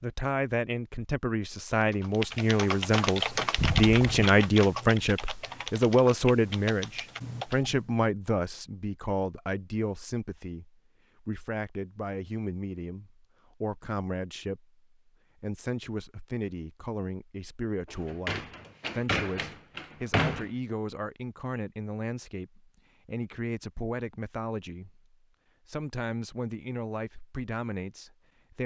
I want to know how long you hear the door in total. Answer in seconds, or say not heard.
3 s.